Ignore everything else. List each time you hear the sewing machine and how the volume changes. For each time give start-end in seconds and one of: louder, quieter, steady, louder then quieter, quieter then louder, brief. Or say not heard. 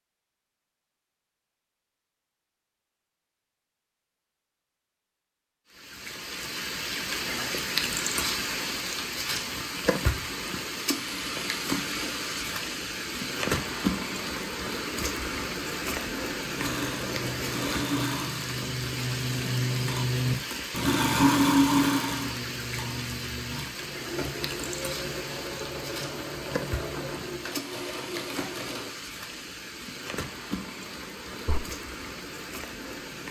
16.6-28.9 louder then quieter.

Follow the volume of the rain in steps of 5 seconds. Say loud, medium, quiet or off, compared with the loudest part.
off, loud, loud, loud, medium, medium, medium.